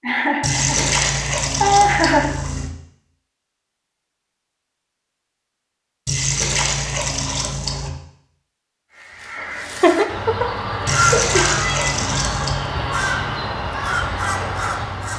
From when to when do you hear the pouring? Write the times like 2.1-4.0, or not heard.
0.4-2.7, 6.0-7.9, 10.8-12.7.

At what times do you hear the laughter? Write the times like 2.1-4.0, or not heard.
0.0-2.4, 9.4-11.4.